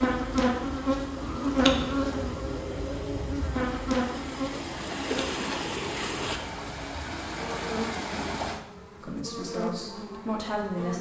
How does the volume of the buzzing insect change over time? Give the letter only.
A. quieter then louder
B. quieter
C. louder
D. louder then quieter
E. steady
B.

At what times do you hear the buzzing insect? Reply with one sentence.
The buzzing insect can be heard from 0.0 to 10.9 s.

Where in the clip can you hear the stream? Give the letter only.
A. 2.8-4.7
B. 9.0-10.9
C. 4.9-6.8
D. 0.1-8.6
D.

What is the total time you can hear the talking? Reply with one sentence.
The talking can be heard for 2 seconds in total.